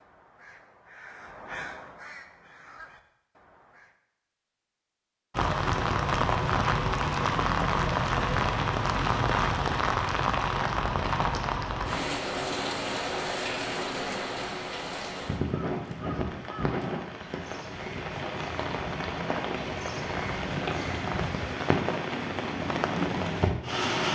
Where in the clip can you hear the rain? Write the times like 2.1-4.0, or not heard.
5.3-24.1.